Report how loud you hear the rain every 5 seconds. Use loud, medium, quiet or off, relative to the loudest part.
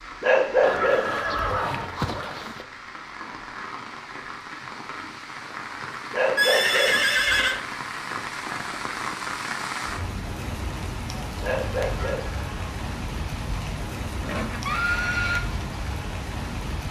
medium, loud, loud, loud.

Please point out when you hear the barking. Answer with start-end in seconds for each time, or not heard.
0.2-1.5, 6.1-7.3, 11.4-12.5.